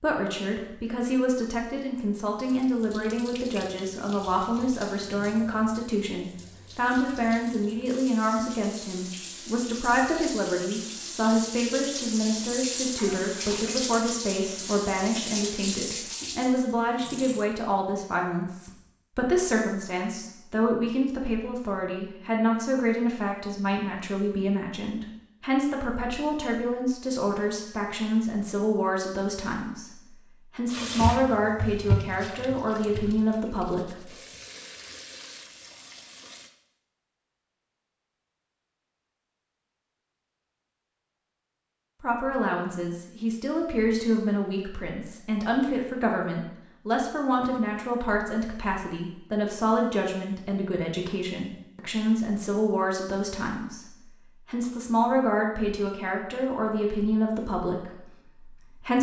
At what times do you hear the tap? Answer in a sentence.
You can hear the tap from 2.4 to 17.4 s and from 30.6 to 36.5 s.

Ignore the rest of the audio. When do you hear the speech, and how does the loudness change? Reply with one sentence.
You can hear the speech from 0.0 to 34.1 s, at a steady volume; and from 42.0 to 58.9 s, at a steady volume.